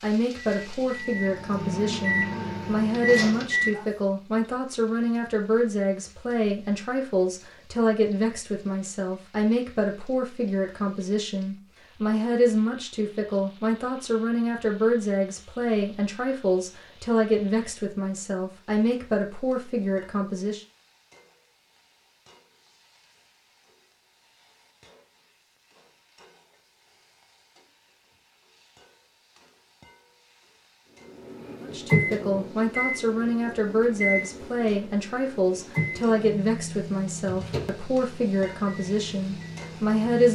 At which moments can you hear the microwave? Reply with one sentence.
You can hear the microwave from 0.5 to 3.9 s and from 31.1 to 40.2 s.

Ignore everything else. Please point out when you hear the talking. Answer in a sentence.
You can hear the talking from 0.0 to 20.6 s and from 31.6 to 40.2 s.